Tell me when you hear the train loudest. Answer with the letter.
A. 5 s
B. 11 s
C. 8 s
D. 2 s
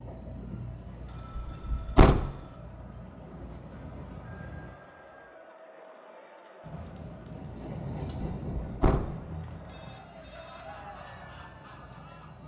C.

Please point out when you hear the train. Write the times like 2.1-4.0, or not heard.
0.0-4.8, 6.6-12.4.